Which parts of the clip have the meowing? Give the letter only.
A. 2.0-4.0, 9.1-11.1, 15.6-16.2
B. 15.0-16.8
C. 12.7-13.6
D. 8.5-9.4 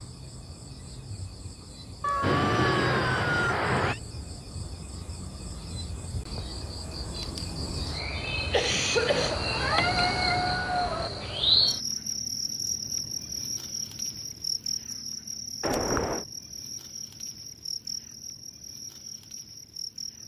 A.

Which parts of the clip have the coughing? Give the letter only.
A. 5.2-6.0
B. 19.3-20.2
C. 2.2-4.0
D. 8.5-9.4
D.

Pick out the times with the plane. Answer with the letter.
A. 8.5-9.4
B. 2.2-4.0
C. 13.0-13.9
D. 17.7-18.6
B.